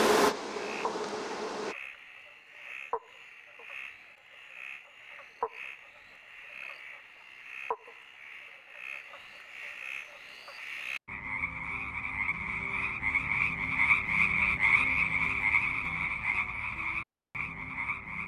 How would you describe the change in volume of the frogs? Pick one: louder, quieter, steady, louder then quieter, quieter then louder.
louder.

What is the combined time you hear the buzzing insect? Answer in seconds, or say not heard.
2 s.